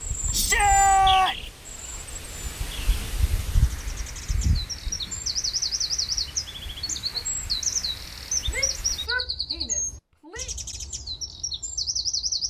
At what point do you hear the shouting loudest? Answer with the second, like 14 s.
1 s.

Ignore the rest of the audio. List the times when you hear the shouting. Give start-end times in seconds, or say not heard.
0.3-1.4, 8.5-10.5.